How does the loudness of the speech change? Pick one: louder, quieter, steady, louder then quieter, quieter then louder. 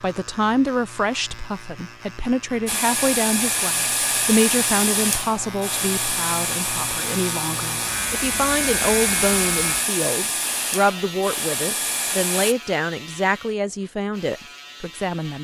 steady.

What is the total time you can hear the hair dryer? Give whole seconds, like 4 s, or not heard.
10 s.